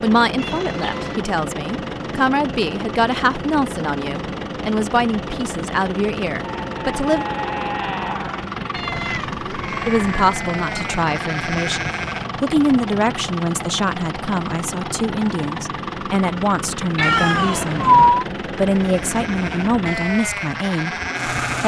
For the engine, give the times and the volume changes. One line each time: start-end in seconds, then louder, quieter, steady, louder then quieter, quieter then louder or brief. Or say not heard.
0.0-21.6 steady.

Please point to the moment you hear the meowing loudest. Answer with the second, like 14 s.
18 s.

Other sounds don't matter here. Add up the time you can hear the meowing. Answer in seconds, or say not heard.
4 s.